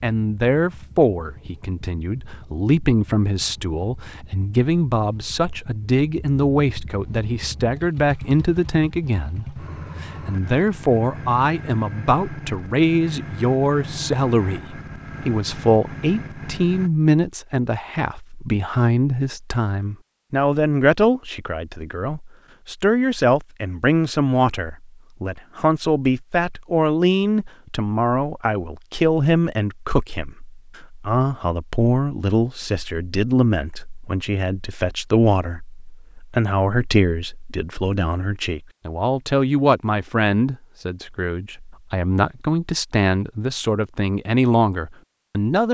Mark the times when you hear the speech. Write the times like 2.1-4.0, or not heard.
0.0-45.7.